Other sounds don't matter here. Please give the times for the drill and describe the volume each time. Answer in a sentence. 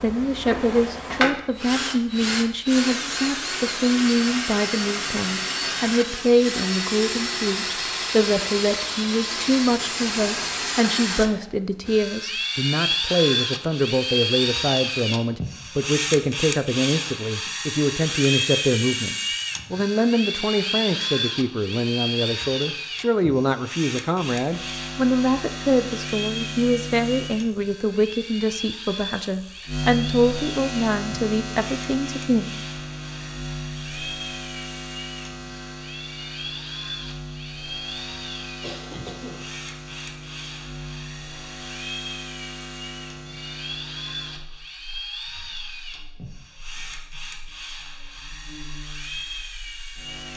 You can hear the drill from 0.0 to 50.3 s, getting quieter.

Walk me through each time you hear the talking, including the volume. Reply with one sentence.
You can hear the talking from 0.0 to 32.5 s, at a steady volume.